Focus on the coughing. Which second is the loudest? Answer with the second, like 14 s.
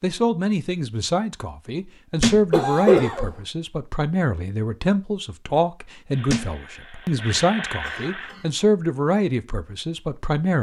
3 s.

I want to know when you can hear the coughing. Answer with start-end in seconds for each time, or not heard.
2.5-3.3, 7.3-8.5.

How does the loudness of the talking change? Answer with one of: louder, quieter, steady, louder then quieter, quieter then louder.
steady.